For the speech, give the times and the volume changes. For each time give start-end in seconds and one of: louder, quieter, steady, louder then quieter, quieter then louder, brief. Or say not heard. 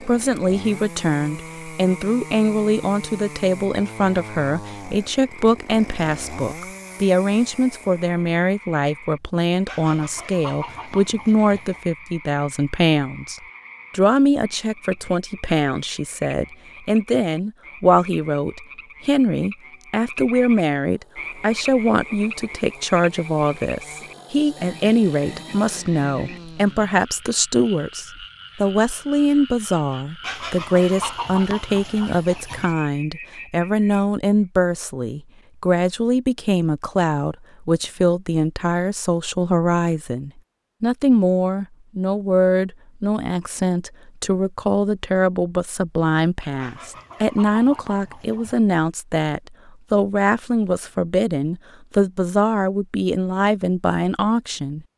0.1-54.9 steady.